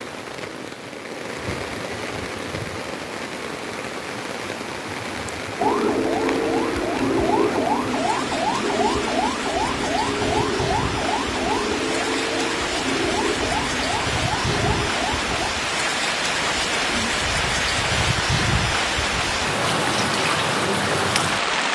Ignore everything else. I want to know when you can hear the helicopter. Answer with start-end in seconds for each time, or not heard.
not heard.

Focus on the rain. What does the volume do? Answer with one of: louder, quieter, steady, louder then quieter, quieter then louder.
louder.